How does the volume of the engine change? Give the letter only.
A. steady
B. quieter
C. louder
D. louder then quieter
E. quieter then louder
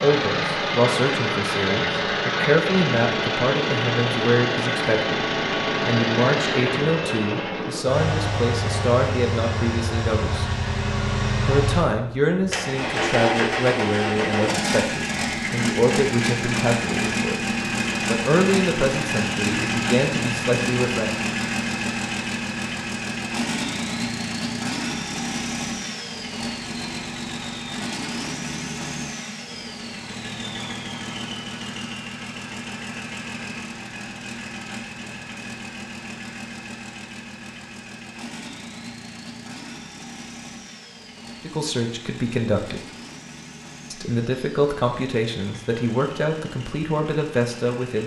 B.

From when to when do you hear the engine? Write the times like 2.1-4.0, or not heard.
0.0-48.0.